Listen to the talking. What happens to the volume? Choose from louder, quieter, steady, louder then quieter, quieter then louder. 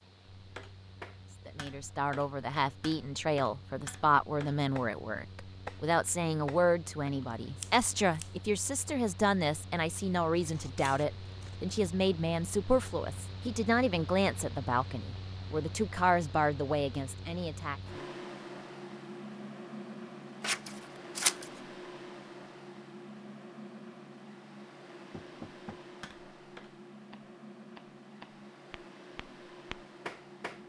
steady.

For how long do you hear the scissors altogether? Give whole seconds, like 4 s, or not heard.
4 s.